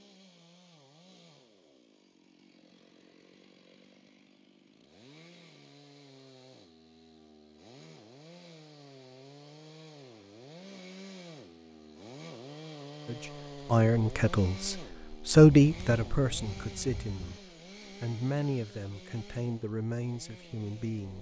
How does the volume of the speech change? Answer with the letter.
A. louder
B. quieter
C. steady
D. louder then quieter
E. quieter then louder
D.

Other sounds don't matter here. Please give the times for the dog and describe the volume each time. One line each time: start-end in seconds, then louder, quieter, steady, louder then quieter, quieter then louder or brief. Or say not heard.
not heard.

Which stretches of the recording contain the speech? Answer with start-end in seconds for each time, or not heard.
13.1-17.4, 18.0-21.1.